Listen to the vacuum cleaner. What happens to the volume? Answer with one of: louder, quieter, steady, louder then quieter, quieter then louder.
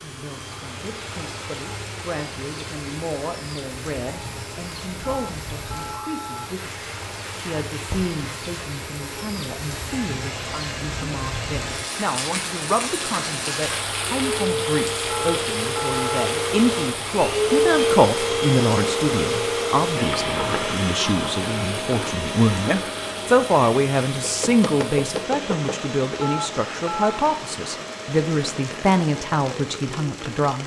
louder then quieter.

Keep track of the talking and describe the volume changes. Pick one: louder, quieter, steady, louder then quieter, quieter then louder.
louder.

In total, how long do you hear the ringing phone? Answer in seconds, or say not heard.
4 s.